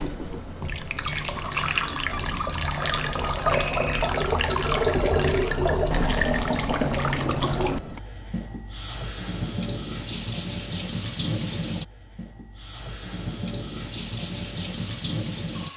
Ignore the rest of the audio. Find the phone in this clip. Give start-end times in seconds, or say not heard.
3.5-4.1.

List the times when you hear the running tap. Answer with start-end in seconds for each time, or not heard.
0.0-15.7.